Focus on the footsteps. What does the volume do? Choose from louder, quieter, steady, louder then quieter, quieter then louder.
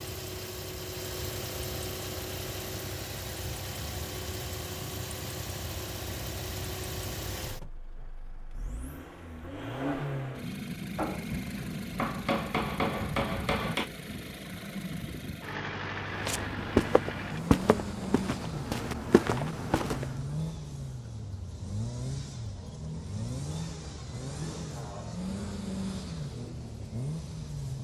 quieter then louder.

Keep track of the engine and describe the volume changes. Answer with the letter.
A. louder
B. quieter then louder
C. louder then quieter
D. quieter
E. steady
E.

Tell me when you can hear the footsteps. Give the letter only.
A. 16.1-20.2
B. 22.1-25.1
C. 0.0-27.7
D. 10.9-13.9
A.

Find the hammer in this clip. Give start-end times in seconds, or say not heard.
10.9-13.9.